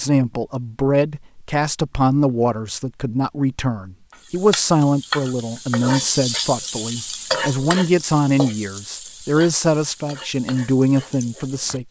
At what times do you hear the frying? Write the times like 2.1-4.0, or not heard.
4.1-11.8.